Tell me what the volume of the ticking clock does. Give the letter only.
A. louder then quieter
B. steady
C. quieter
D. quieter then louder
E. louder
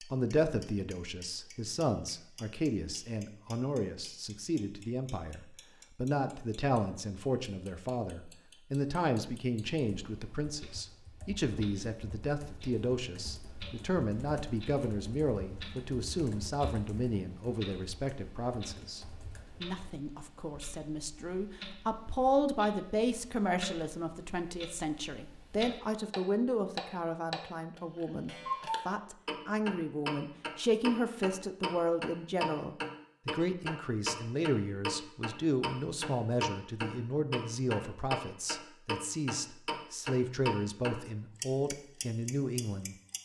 E.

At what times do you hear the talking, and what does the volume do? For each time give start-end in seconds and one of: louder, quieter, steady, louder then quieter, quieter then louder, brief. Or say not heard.
0.0-43.0 steady.